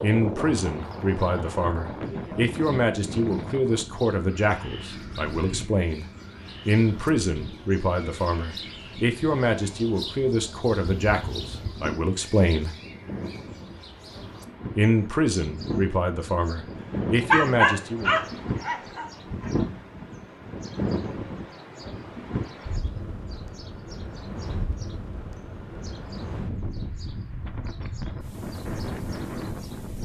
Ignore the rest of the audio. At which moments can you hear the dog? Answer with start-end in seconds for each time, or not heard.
17.3-19.5.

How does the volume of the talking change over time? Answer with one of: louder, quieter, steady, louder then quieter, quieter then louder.
steady.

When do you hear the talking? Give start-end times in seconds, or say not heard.
0.0-6.0, 6.7-12.8, 14.8-18.1.